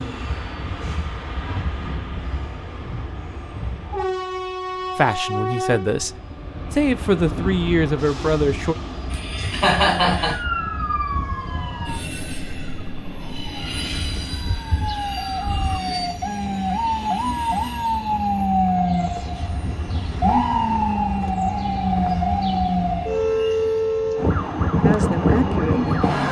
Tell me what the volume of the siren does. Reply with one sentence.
The loudness of the siren goes up.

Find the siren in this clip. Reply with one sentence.
You can hear the siren from 10.2 to 26.2 s.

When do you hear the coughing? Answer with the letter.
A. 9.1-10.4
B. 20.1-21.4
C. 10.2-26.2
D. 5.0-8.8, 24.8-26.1
A.